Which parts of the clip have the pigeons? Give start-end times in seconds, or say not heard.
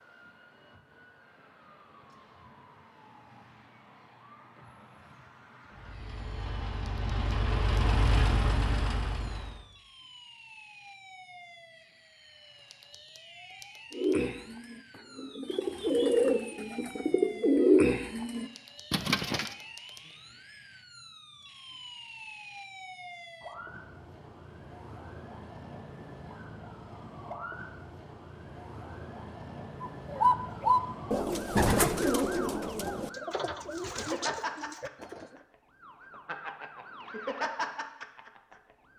13.9-19.6, 29.8-35.5.